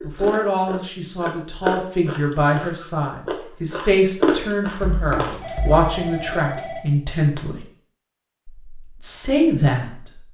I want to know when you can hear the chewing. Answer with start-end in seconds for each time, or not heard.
0.0-5.8.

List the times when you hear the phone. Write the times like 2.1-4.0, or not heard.
4.8-6.8.